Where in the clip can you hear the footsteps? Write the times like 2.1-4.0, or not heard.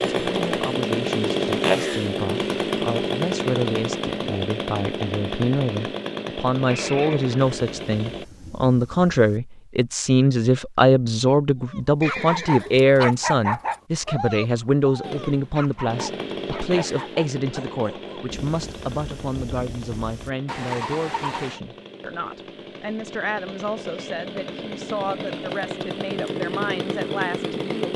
not heard.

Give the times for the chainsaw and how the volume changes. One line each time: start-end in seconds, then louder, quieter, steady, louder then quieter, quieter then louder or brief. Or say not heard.
0.0-8.2 quieter
15.0-27.9 quieter then louder.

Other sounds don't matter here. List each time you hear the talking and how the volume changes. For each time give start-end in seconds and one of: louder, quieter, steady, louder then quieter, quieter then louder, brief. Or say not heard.
0.2-27.9 louder then quieter.